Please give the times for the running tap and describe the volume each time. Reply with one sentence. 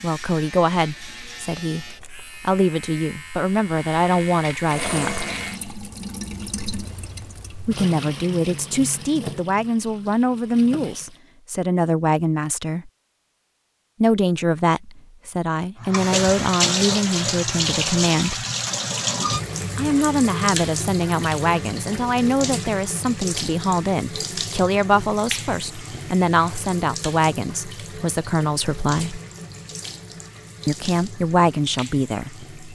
The running tap can be heard from 4.7 to 11.2 s, getting quieter; and from 15.8 to 32.7 s, getting quieter.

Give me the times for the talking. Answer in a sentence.
You can hear the talking from 0.0 to 5.2 s, from 7.7 to 12.9 s, from 14.0 to 18.4 s, from 19.8 to 29.2 s and from 30.6 to 32.5 s.